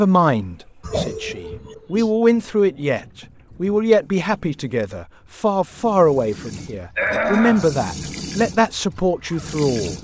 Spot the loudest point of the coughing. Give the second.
7 s.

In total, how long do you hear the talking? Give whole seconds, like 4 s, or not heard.
10 s.